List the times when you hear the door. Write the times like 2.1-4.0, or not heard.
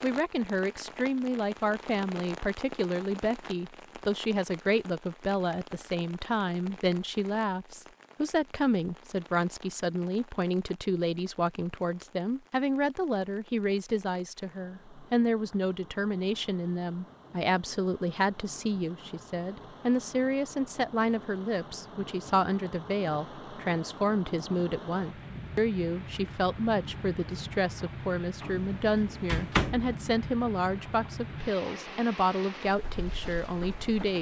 28.4-29.9.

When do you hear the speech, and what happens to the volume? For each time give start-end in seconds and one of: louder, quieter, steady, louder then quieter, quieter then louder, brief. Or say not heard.
0.0-34.1 steady.